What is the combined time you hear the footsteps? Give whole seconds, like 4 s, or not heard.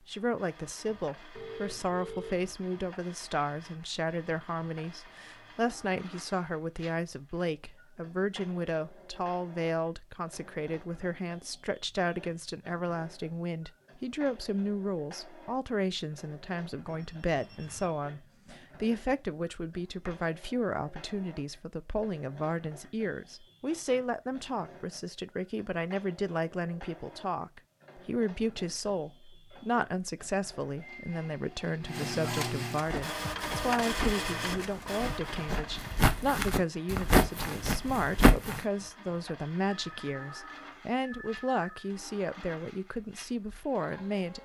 6 s.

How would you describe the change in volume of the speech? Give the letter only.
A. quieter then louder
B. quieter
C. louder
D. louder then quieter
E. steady
E.